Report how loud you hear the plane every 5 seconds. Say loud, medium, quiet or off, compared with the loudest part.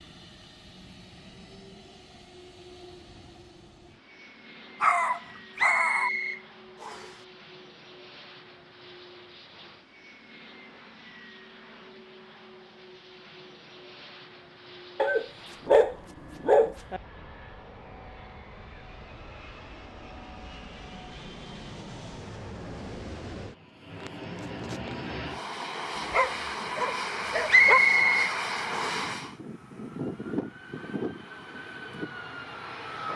quiet, quiet, quiet, quiet, medium, loud, loud.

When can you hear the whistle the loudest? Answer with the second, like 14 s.
28 s.